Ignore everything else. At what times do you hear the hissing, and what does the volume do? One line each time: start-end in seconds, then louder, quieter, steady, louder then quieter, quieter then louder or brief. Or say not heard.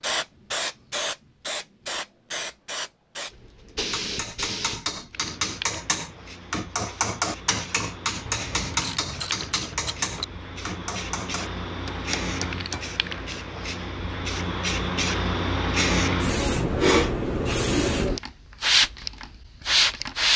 0.0-20.3 quieter then louder.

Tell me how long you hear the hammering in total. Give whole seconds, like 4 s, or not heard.
9 s.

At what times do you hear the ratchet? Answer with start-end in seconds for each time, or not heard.
8.2-10.2.